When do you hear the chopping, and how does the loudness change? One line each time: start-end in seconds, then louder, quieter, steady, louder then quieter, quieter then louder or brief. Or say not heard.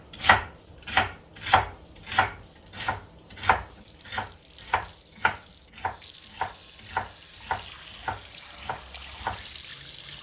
0.2-10.1 quieter.